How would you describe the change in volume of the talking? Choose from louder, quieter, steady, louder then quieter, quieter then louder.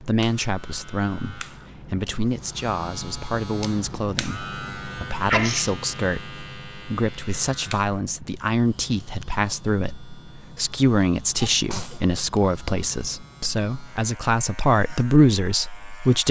louder.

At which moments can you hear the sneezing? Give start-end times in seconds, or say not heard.
5.2-5.7, 11.4-12.1.